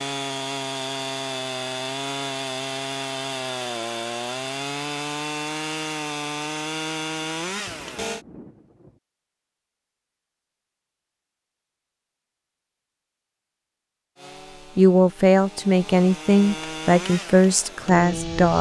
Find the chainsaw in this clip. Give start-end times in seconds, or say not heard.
0.0-8.2, 14.2-18.5.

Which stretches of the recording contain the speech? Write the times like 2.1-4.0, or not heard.
14.8-18.5.